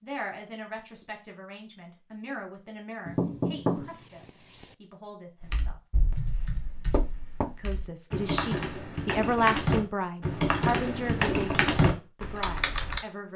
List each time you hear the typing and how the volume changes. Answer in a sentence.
The typing can be heard from 5.4 to 13.0 s, getting louder.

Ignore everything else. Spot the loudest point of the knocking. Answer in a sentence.
The volume of the knocking peaks at 4 seconds.